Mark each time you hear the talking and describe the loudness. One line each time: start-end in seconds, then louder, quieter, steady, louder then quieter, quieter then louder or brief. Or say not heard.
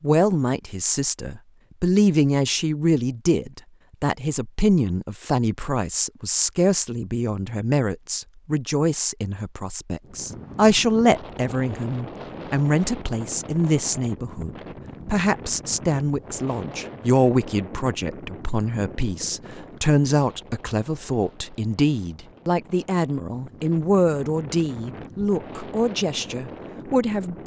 0.0-27.4 steady.